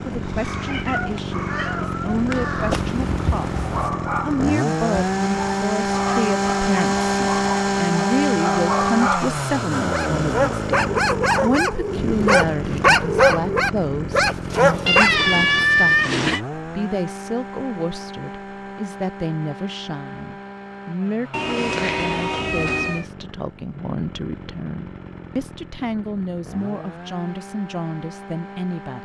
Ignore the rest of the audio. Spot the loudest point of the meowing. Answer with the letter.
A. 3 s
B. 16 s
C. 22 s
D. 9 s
B.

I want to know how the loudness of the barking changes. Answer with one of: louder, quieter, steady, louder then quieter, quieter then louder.
louder.